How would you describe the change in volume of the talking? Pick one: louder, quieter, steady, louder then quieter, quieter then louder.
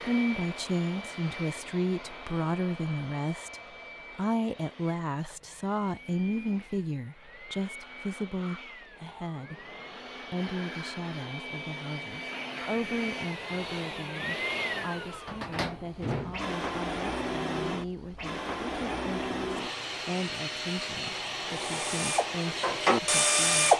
quieter.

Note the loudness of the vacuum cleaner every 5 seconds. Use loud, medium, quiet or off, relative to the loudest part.
medium, quiet, loud, loud, loud.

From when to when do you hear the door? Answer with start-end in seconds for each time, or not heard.
15.2-16.5.